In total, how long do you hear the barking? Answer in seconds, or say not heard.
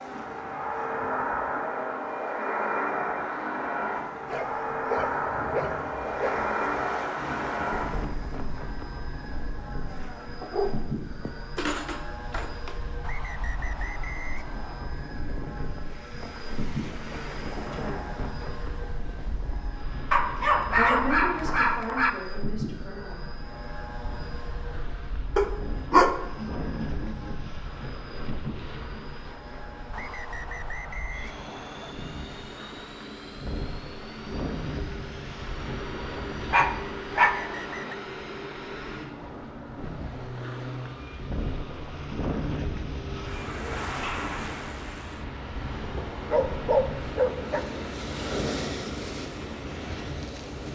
11 s.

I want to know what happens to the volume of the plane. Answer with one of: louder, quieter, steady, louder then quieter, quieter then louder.
quieter.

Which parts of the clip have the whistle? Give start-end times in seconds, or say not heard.
13.0-14.9, 29.9-31.9, 37.4-38.0.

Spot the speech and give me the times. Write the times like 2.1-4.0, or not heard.
17.7-18.2, 20.8-23.5.